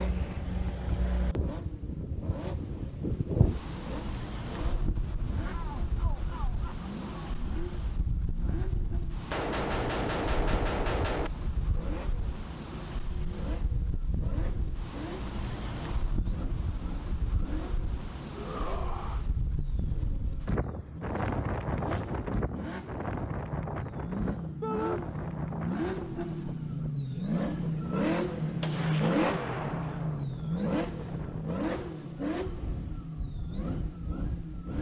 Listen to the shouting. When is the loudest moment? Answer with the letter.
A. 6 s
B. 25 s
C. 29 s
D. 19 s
B.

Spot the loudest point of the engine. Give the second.
29 s.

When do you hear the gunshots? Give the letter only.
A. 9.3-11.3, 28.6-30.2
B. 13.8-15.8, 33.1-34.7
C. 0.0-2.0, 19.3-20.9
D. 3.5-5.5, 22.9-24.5
A.